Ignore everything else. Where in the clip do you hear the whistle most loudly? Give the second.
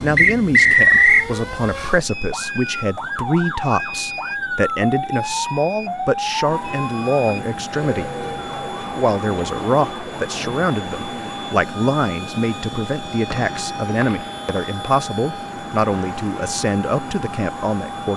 1 s.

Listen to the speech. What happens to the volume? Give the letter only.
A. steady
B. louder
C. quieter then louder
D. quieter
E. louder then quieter
A.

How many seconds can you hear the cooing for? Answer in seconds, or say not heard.
not heard.